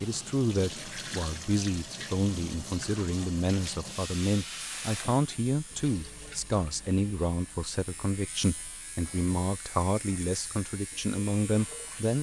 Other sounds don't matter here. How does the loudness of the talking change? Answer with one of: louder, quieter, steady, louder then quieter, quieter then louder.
steady.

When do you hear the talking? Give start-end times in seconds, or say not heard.
0.0-12.1.